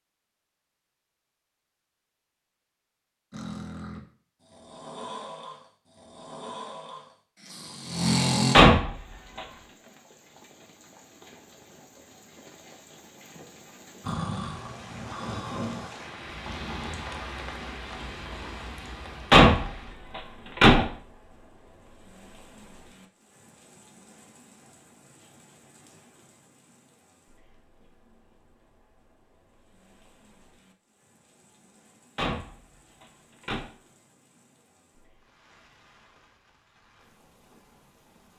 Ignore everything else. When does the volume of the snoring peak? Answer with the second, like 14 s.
8 s.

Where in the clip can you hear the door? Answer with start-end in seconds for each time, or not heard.
8.5-9.4, 19.3-20.9, 32.1-33.7.